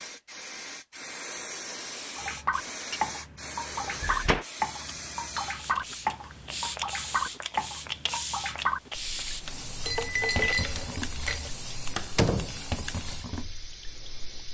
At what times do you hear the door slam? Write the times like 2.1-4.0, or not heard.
3.7-4.5, 11.9-12.6.